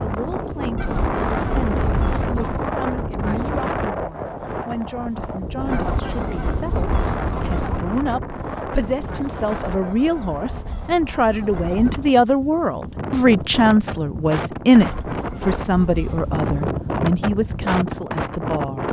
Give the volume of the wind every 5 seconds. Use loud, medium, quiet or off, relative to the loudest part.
loud, loud, medium, loud.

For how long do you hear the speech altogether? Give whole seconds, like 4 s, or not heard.
19 s.